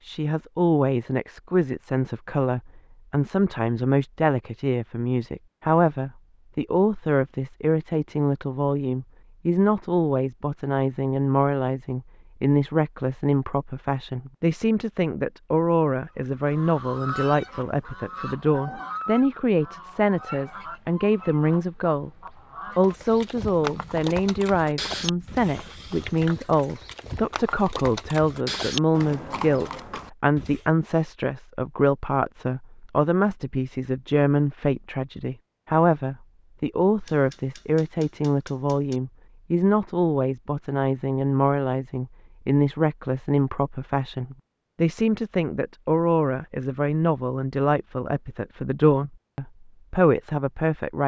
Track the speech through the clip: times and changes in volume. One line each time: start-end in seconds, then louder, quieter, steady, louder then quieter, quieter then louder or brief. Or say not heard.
0.1-22.1 steady
22.8-51.0 steady.